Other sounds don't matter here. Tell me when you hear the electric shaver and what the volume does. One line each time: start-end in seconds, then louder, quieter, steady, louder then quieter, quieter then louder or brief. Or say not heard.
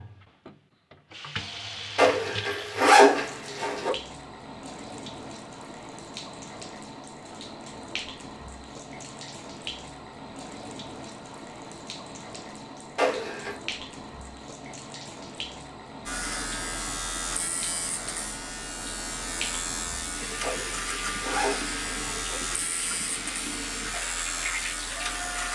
16.1-25.5 steady.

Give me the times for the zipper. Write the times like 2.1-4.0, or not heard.
1.9-3.9, 12.9-13.6, 20.4-22.4.